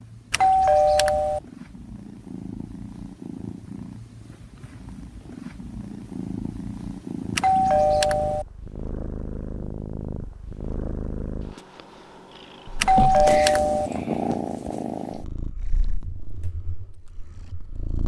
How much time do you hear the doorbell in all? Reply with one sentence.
The doorbell can be heard for 3 seconds in total.